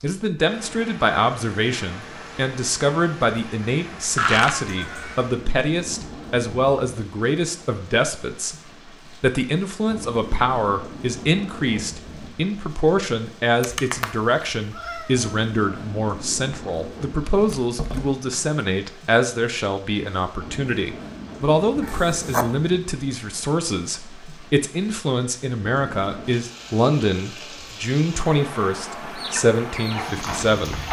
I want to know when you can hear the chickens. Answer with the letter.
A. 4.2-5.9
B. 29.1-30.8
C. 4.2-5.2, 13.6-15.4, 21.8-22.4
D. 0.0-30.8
B.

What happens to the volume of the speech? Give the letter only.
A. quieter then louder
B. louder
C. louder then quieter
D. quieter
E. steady
E.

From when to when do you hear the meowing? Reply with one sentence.
The meowing can be heard from 4.2 to 5.2 s, from 13.6 to 15.4 s and from 21.8 to 22.4 s.